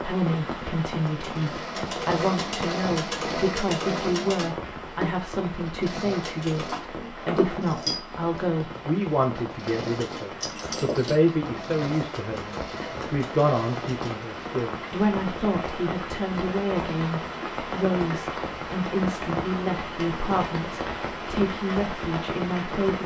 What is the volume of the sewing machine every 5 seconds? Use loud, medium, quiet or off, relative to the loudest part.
loud, loud, medium, off, off.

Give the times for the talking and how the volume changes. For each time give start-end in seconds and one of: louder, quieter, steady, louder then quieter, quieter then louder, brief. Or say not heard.
0.0-23.0 steady.